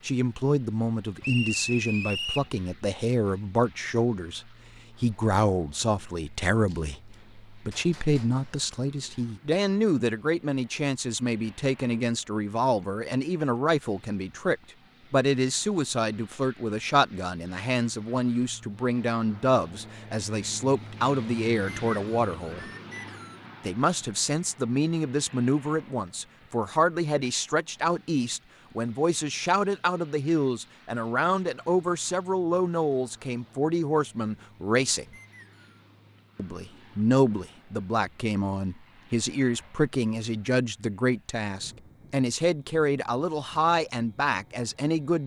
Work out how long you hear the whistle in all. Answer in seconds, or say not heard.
4 s.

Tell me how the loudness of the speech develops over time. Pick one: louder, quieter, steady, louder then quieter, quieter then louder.
steady.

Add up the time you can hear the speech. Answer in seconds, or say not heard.
43 s.